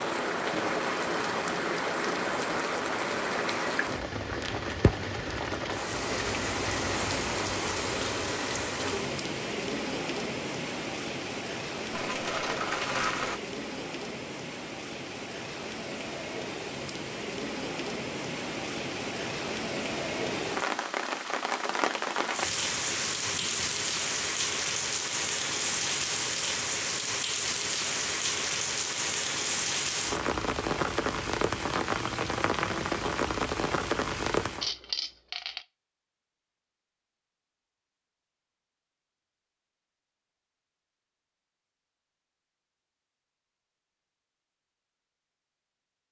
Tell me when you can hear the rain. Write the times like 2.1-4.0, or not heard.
0.0-34.7.